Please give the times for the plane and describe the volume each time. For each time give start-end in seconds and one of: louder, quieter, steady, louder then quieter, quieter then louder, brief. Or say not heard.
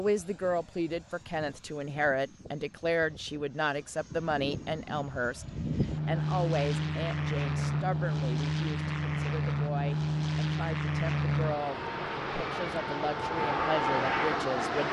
0.0-14.8 louder.